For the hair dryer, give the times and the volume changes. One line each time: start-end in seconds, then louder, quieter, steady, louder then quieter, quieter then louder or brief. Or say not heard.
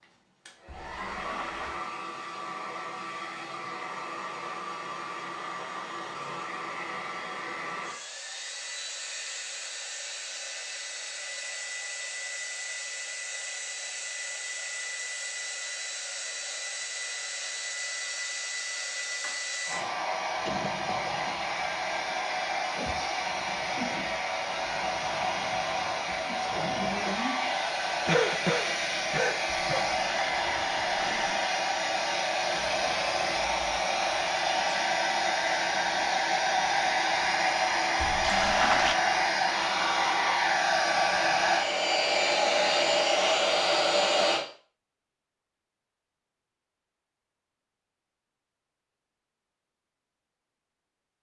0.0-44.5 louder.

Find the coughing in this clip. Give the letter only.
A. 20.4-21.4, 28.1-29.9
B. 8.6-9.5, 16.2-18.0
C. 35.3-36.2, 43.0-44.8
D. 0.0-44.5
A.